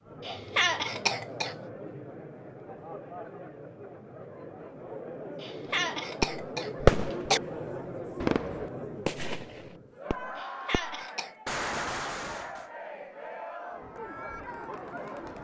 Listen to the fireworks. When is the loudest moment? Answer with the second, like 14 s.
7 s.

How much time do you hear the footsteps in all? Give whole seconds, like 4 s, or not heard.
not heard.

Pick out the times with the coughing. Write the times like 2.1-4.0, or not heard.
0.2-1.6, 5.4-7.4, 10.3-11.3.